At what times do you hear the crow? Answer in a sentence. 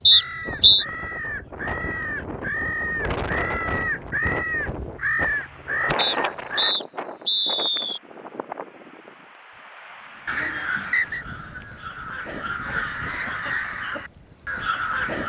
The crow can be heard from 0.1 to 6.8 s and from 10.2 to 15.2 s.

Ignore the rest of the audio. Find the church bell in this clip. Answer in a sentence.
The church bell can't be heard in this clip.